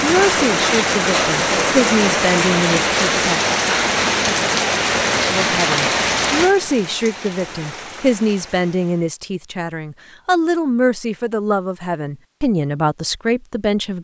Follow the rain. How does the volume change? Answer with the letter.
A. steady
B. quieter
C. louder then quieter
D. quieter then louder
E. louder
B.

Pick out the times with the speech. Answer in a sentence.
You can hear the speech from 0.0 to 3.4 s and from 5.3 to 14.0 s.